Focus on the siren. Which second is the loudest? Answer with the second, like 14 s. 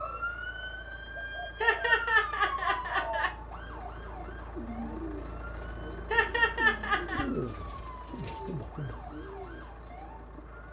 2 s.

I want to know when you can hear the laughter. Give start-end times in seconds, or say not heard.
1.6-3.3, 6.1-7.2.